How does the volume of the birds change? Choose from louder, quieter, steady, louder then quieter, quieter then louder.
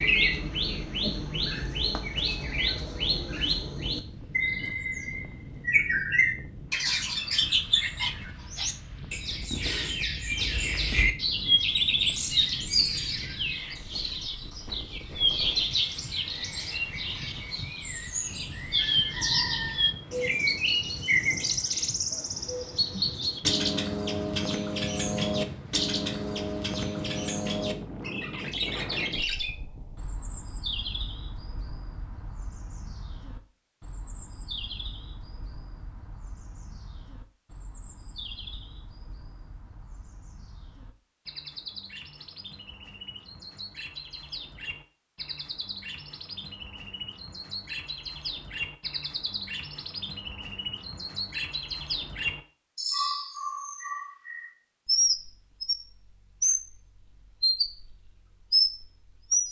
quieter then louder.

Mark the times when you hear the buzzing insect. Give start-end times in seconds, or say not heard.
not heard.